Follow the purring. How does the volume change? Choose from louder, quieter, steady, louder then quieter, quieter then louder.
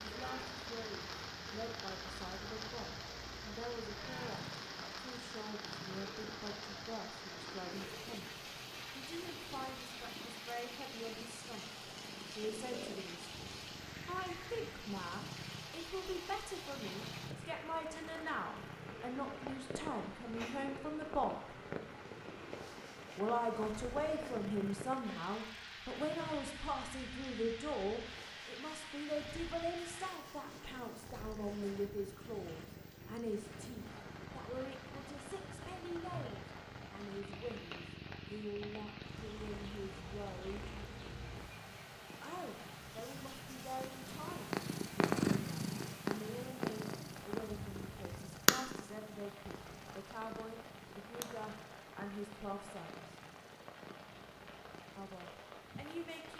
louder.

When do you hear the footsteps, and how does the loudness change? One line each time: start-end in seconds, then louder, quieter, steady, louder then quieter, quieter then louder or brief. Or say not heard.
not heard.